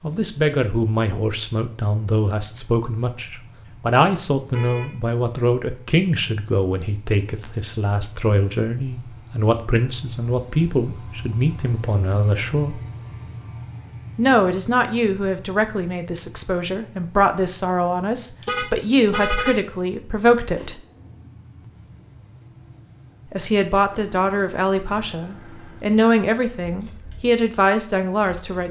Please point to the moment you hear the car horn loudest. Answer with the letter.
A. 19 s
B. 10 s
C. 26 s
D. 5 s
A.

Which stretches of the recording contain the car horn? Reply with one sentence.
The car horn can be heard from 4.5 to 5.0 s and from 18.4 to 19.6 s.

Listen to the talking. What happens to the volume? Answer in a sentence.
The volume of the talking stays about the same.